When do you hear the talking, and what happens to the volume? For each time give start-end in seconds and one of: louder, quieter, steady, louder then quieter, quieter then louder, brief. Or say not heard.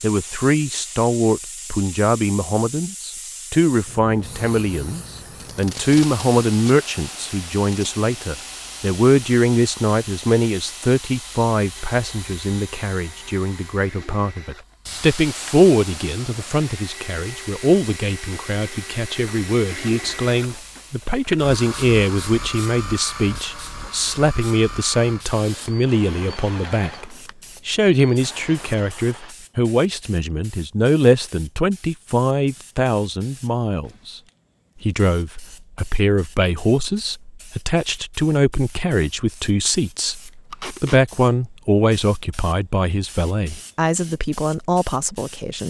0.0-34.2 steady
34.8-45.6 steady.